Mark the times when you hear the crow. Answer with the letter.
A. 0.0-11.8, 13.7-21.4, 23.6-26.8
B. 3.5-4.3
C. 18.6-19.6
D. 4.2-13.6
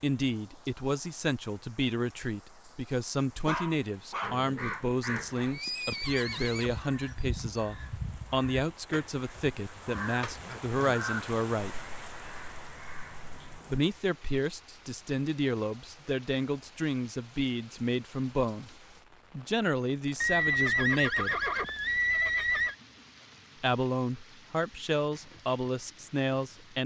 D.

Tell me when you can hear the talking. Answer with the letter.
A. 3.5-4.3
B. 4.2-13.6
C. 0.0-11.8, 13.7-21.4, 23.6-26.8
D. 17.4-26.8
C.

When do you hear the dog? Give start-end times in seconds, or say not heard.
3.5-4.3.